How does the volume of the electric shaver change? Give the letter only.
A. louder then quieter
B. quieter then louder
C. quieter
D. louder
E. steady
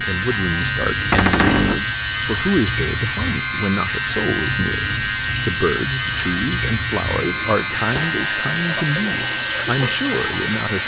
E.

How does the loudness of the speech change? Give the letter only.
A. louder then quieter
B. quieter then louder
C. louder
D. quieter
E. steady
E.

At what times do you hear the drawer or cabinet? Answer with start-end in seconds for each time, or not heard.
1.1-1.9, 7.2-8.2.